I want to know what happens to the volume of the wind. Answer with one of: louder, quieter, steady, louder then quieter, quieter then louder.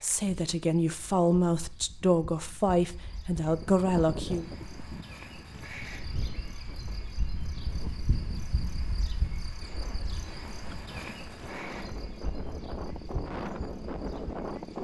quieter then louder.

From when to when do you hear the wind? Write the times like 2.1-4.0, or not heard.
3.4-14.8.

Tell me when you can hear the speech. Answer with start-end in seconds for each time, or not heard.
0.0-4.5.